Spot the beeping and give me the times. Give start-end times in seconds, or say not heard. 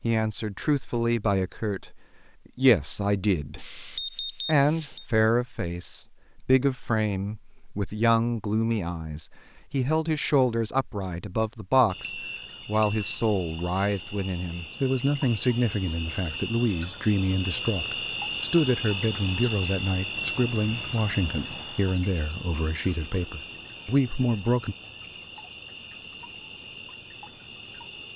3.5-5.0, 12.1-13.1, 20.1-21.6.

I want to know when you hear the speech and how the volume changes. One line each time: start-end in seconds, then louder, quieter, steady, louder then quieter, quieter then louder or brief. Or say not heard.
0.0-24.8 steady.